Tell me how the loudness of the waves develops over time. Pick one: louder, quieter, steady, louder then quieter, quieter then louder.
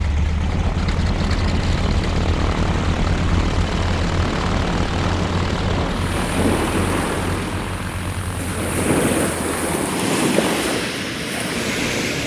louder.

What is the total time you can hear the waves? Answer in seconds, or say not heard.
12 s.